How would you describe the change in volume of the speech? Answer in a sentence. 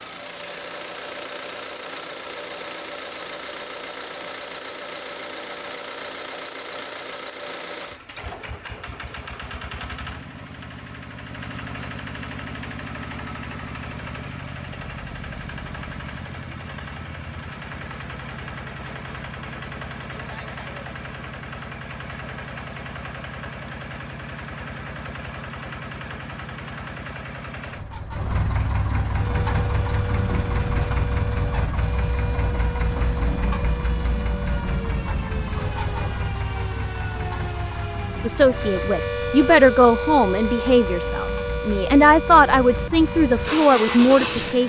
The volume of the speech goes down, then up.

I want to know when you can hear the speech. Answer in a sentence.
The speech can be heard from 38.2 to 44.6 s.